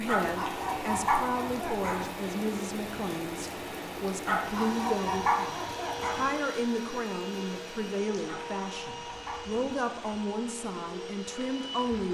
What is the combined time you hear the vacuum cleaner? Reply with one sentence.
The vacuum cleaner can be heard for 8 seconds in total.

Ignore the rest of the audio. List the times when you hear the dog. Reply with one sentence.
The dog can be heard from 0.1 to 2.0 s, from 4.2 to 6.3 s and from 8.2 to 10.3 s.